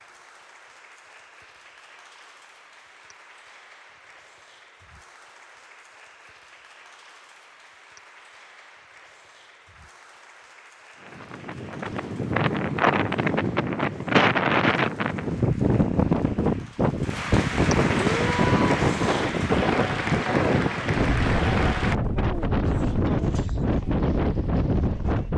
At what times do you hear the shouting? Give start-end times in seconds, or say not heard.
18.0-18.8.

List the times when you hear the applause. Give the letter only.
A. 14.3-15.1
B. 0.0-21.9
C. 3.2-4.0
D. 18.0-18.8
B.